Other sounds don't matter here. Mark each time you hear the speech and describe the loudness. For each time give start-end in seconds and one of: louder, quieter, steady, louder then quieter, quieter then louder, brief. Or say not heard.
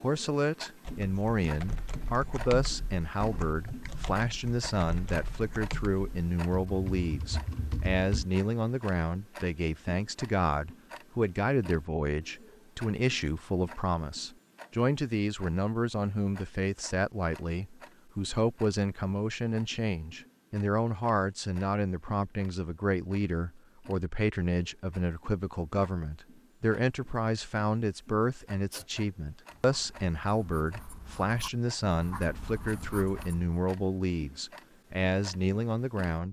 0.0-36.2 steady.